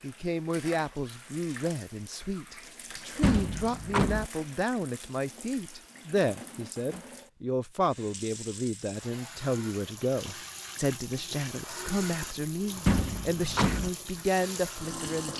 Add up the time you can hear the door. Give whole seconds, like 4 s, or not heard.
2 s.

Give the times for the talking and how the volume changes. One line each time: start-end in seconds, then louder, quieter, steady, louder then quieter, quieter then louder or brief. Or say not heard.
0.0-15.3 steady.